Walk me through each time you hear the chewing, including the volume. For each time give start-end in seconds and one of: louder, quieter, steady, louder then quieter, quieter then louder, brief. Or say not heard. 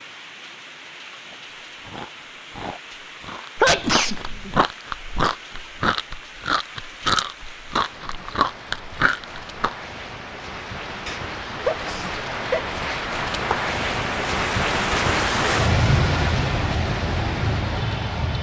1.2-9.8 louder.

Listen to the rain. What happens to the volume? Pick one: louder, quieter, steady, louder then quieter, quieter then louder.
louder.